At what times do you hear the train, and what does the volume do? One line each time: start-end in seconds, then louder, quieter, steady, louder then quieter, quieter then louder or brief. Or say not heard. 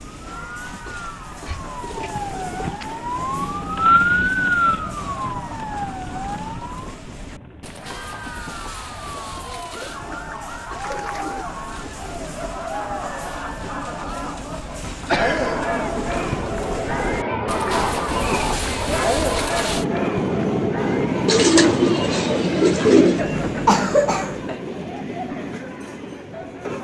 0.0-26.7 louder.